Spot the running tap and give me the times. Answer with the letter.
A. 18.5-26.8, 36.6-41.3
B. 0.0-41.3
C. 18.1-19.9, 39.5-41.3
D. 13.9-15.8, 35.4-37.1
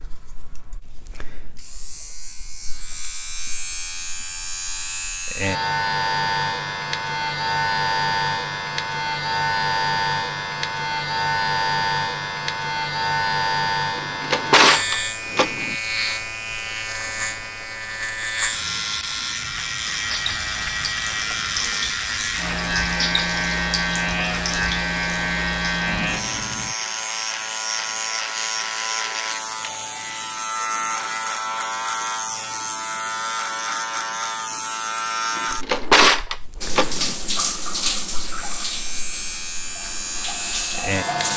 A.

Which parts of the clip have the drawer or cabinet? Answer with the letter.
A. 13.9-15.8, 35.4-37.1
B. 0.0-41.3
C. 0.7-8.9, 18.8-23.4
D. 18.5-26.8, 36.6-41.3
A.